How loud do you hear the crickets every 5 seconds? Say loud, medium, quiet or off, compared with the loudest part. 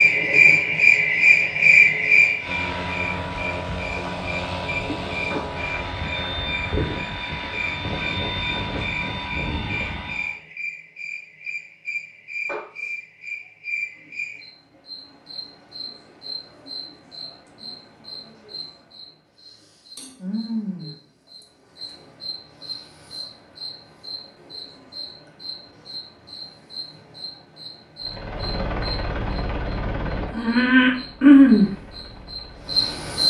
loud, quiet, quiet, quiet, quiet, quiet, loud.